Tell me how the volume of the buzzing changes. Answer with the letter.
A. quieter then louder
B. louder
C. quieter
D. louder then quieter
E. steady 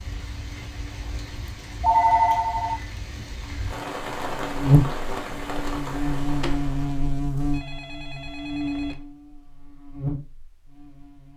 C.